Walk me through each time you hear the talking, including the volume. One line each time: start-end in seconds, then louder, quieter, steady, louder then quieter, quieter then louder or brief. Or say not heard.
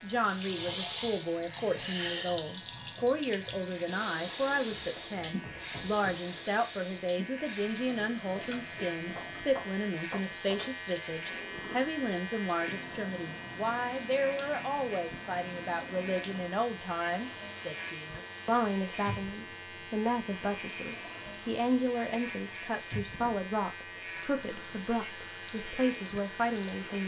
0.0-27.0 steady.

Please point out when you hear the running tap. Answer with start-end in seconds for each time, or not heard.
0.0-27.0.